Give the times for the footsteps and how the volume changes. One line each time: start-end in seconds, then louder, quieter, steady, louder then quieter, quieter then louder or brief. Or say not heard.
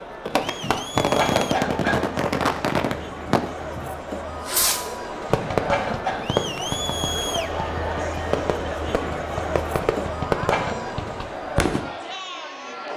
not heard.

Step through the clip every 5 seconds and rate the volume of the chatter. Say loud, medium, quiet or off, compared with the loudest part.
medium, loud, loud.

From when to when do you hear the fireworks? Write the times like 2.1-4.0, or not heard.
0.2-11.8.